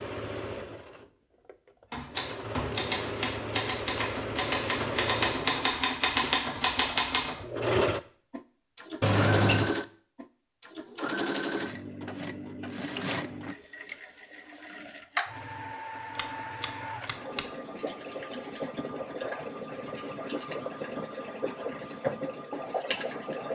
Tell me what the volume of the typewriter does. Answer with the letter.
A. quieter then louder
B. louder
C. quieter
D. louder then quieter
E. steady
B.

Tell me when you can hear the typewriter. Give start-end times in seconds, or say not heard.
1.9-7.4.